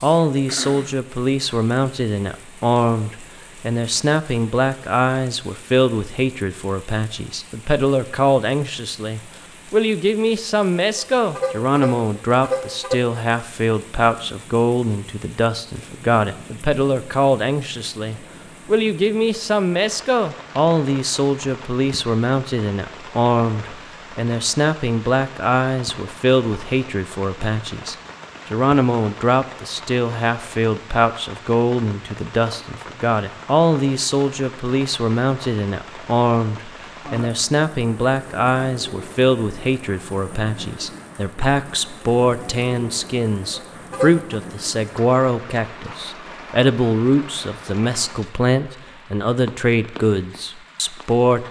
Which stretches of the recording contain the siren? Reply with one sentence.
The siren can't be heard in this clip.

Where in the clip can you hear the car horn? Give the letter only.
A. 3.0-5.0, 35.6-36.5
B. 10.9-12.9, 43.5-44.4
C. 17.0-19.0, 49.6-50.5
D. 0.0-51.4
B.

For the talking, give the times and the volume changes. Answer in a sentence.
The talking can be heard from 0.0 to 51.4 s, at a steady volume.